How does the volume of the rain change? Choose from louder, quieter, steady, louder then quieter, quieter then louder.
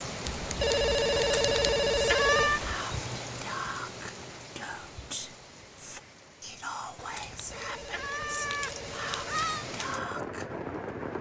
quieter then louder.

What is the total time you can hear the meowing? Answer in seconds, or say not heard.
4 s.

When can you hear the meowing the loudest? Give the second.
2 s.